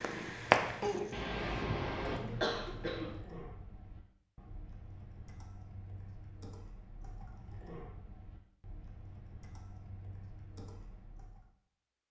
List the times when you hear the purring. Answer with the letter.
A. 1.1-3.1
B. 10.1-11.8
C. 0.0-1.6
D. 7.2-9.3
C.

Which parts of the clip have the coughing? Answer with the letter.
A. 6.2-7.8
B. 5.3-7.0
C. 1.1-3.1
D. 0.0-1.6
C.